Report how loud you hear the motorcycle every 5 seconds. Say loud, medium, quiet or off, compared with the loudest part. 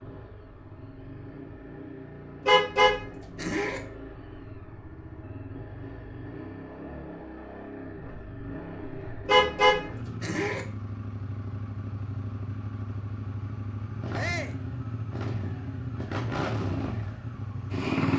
quiet, medium, medium, loud.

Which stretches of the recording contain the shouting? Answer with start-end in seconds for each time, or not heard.
14.2-14.6.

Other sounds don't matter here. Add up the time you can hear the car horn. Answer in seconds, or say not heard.
3 s.